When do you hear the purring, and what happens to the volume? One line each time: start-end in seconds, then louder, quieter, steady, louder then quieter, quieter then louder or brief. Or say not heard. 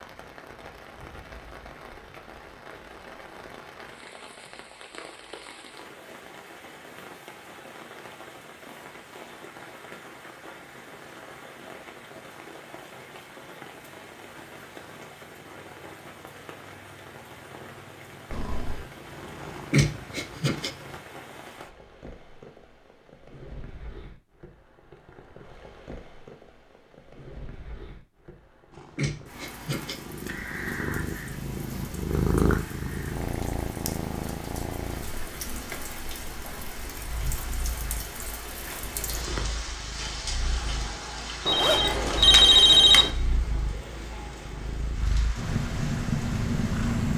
18.3-21.0 brief
28.7-47.1 quieter then louder.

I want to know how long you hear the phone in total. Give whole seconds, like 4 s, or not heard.
2 s.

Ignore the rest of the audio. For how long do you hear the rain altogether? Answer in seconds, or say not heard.
47 s.